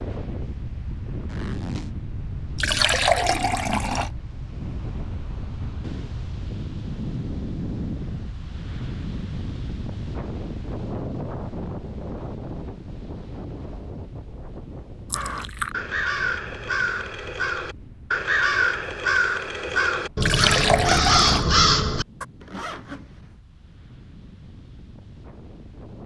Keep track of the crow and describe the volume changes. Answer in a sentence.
The loudness of the crow goes up.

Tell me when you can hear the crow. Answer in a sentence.
The crow can be heard from 15.1 to 22.2 s.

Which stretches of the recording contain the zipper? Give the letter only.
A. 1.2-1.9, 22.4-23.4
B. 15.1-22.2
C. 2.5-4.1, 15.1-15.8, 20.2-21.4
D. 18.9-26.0
A.